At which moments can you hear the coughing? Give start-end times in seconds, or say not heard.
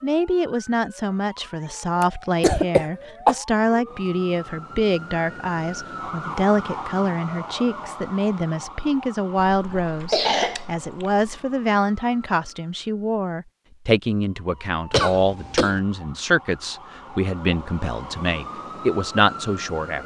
2.0-3.4, 9.5-11.3, 14.9-15.8.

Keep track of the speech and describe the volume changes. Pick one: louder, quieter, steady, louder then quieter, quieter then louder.
steady.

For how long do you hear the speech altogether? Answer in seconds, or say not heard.
20 s.